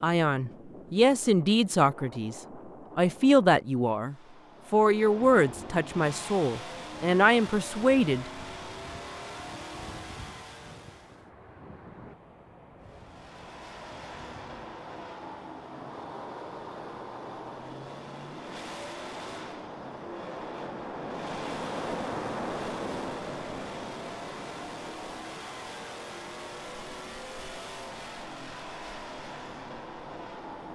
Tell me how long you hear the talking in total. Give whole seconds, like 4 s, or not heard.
8 s.